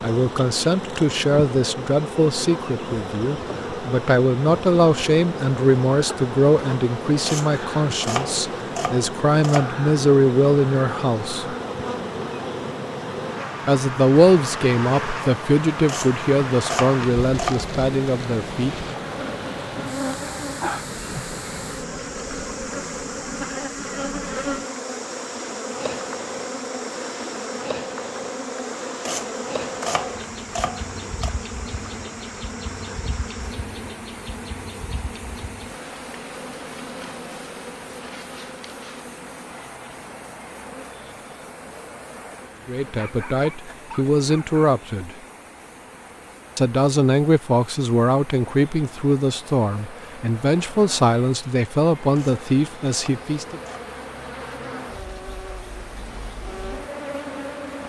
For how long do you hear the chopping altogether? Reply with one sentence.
You can hear the chopping for 9 seconds altogether.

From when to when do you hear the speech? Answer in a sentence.
The speech can be heard from 0.0 to 11.6 s, from 13.7 to 18.8 s, from 42.6 to 45.1 s and from 46.5 to 53.6 s.